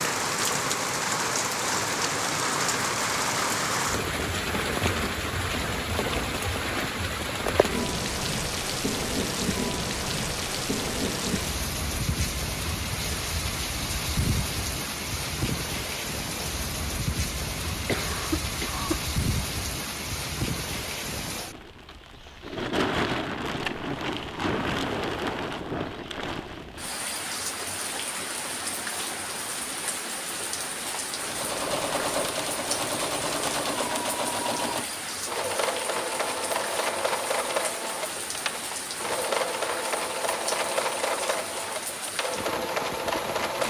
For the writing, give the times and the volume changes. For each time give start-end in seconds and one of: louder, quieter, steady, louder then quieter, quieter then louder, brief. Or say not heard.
not heard.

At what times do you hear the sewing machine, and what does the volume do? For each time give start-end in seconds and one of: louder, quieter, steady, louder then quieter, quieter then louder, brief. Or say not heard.
31.1-43.6 steady.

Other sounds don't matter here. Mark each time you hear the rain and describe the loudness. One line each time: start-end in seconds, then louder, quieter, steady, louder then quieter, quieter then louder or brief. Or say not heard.
0.0-43.6 quieter.